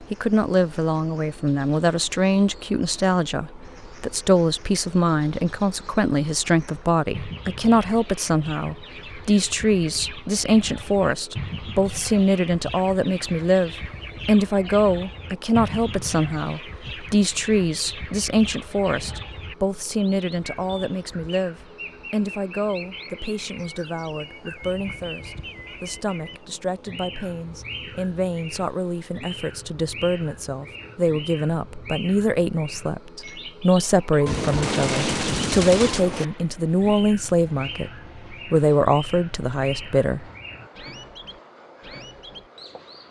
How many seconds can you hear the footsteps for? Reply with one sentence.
You can't hear the footsteps here.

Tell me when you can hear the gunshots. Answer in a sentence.
The gunshots can be heard from 34.2 to 36.2 s.